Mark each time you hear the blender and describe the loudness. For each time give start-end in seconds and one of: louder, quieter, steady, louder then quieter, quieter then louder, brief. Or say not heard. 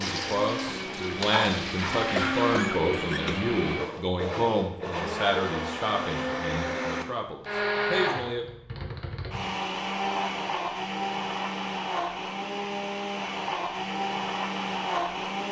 0.0-15.4 steady.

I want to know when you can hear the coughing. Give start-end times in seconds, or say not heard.
2.1-3.5.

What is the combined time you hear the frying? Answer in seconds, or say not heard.
3 s.